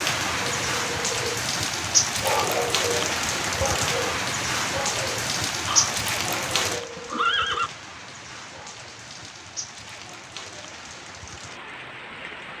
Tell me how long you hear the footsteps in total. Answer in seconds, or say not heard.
not heard.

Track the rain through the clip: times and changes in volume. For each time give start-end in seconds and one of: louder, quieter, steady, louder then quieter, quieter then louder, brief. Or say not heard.
0.0-12.5 quieter.